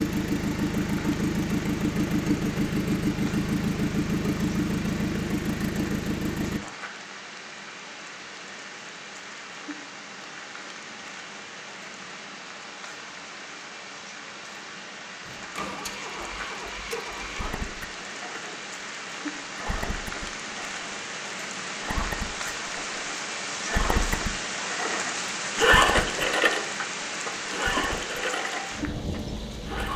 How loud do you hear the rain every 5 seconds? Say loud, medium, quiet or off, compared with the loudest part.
medium, medium, medium, medium, loud, loud.